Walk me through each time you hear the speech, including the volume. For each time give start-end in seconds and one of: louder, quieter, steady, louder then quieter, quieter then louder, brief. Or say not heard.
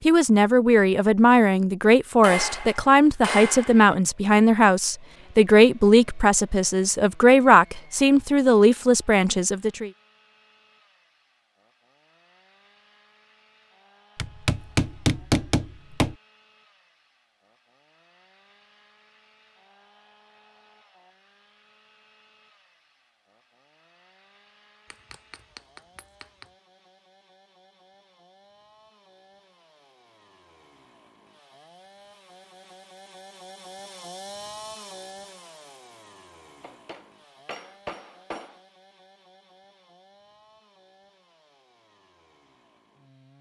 0.1-9.9 steady.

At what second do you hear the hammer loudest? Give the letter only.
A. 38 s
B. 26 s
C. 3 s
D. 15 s
D.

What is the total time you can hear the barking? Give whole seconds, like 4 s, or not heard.
not heard.